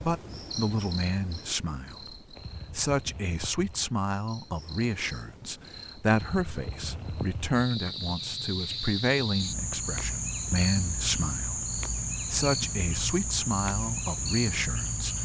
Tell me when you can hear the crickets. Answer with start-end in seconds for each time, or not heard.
0.0-15.2.